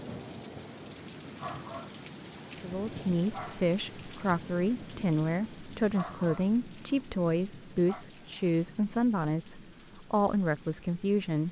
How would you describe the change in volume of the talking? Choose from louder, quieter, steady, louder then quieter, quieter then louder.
steady.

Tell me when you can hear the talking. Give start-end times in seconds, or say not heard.
2.6-11.4.